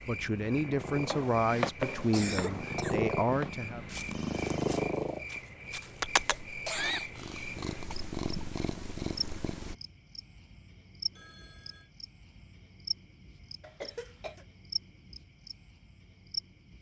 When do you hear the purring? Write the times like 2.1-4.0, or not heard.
0.1-9.8.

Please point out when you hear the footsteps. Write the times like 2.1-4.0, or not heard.
0.8-6.5.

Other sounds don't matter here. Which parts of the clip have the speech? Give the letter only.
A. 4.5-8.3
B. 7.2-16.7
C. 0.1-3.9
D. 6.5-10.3
C.